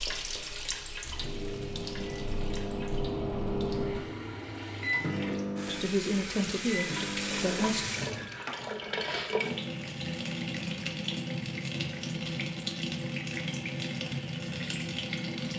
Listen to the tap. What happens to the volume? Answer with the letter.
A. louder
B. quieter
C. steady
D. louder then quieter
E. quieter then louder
A.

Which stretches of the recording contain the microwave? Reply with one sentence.
The microwave can be heard from 0.0 to 7.7 s.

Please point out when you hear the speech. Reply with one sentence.
You can hear the speech from 5.7 to 7.8 s.